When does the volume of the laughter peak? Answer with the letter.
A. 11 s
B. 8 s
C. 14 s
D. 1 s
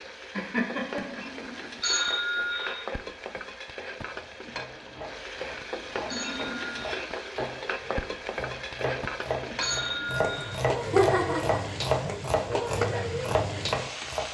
A.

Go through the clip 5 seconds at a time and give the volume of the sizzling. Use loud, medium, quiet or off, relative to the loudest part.
medium, loud, loud.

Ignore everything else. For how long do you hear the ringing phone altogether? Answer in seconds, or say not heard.
3 s.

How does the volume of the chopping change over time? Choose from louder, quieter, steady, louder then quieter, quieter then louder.
louder.